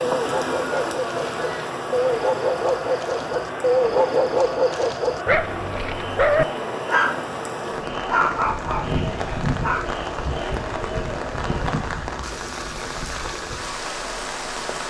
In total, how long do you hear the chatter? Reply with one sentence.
The chatter can be heard for 12 seconds in total.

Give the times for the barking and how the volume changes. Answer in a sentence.
The barking can be heard from 0.0 to 7.2 s, getting louder; and briefly from 8.1 to 9.9 s.